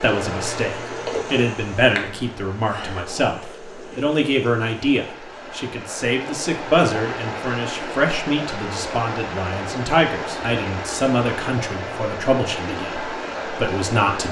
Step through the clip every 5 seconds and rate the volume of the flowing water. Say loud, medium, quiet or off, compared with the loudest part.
medium, loud, loud.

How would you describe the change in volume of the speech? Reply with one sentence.
The loudness of the speech stays about the same.